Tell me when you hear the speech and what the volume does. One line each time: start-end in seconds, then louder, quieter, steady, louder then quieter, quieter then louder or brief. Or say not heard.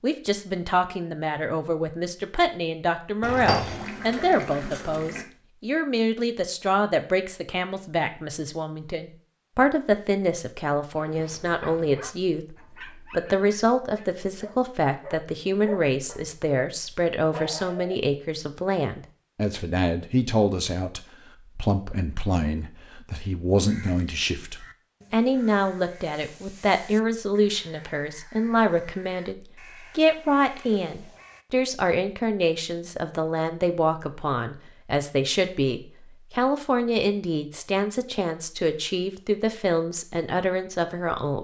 0.0-41.3 steady.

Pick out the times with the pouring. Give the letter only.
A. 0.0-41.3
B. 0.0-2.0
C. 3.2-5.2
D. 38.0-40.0
C.